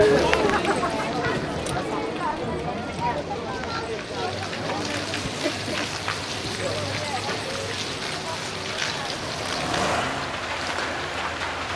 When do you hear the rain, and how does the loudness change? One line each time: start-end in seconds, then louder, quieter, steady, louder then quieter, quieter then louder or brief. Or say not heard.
0.0-11.7 louder.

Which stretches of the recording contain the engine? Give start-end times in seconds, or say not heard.
9.1-11.7.